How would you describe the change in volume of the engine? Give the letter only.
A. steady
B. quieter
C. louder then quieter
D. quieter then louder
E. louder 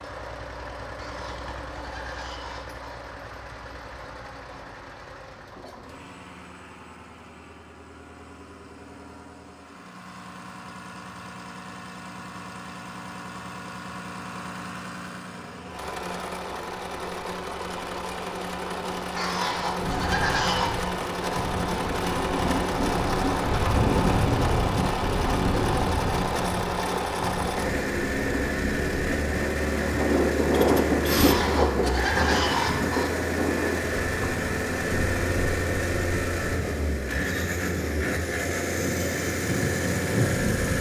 E.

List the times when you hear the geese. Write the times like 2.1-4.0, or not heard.
0.9-3.0, 19.1-20.7, 31.1-33.1.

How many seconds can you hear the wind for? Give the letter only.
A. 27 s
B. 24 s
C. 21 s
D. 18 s
C.